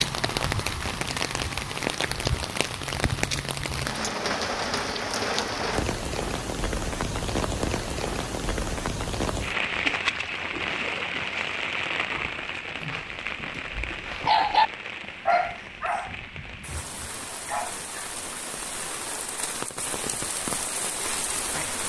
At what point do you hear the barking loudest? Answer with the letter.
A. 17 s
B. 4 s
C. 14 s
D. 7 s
C.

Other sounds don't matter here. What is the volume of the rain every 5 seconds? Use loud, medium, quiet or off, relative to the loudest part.
loud, loud, loud, medium, loud.